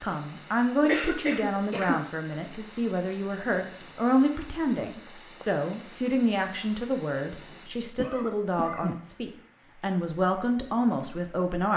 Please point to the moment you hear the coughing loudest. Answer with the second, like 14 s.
1 s.